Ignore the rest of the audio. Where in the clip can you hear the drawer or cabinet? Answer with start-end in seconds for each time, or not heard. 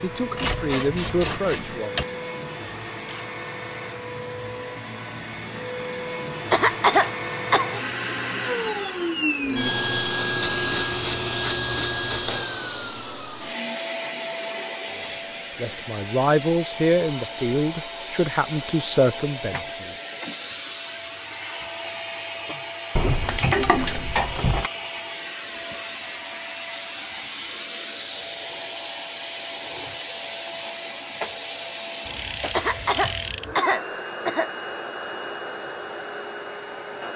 not heard.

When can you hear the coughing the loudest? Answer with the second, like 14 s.
7 s.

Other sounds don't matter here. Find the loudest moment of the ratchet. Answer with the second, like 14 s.
24 s.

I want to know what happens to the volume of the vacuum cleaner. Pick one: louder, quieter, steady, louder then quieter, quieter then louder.
louder then quieter.